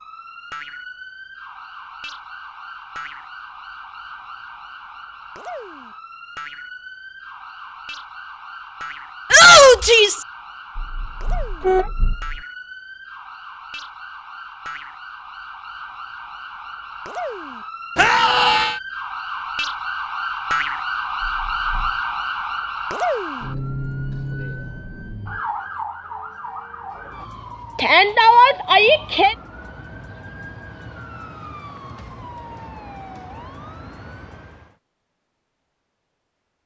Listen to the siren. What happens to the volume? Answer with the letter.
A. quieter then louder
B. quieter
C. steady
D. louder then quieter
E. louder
D.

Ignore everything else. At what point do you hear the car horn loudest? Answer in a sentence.
The loudest moment of the car horn is at 12 seconds.